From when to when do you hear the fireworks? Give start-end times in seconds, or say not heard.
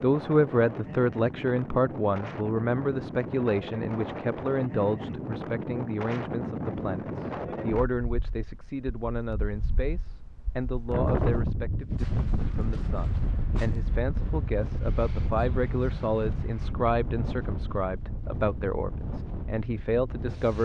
not heard.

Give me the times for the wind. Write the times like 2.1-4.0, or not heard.
0.0-20.6.